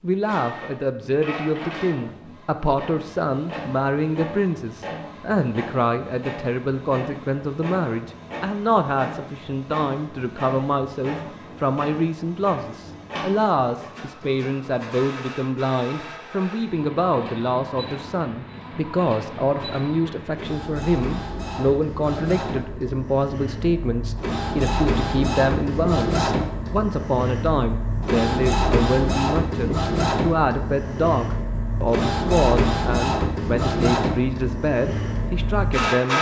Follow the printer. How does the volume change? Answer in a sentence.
The loudness of the printer goes up.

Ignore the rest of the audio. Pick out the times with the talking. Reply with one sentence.
You can hear the talking from 0.0 to 36.1 s.